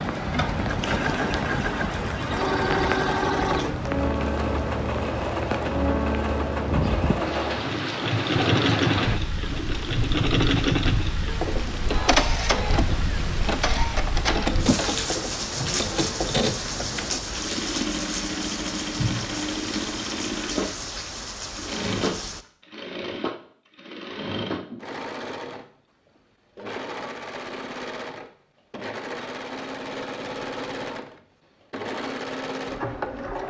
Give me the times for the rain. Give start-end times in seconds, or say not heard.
0.0-22.4.